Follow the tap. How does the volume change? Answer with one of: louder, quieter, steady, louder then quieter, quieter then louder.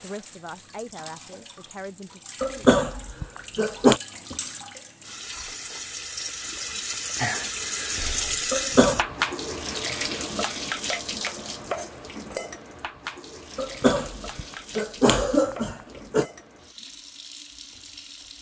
louder then quieter.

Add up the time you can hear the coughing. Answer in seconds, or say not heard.
5 s.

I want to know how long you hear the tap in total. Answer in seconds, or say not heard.
18 s.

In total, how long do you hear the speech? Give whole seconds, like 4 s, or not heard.
3 s.